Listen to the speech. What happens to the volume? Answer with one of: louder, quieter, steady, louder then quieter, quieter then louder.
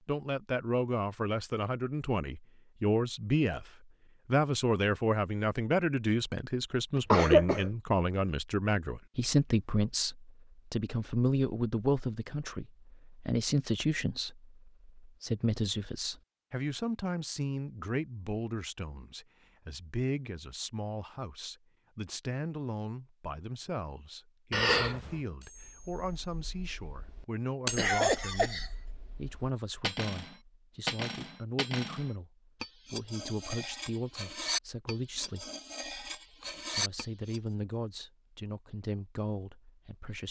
quieter.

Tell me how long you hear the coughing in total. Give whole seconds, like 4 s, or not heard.
2 s.